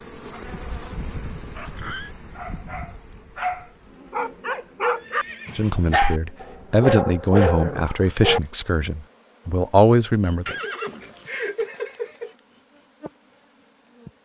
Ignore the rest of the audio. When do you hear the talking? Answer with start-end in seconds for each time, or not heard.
5.5-10.6.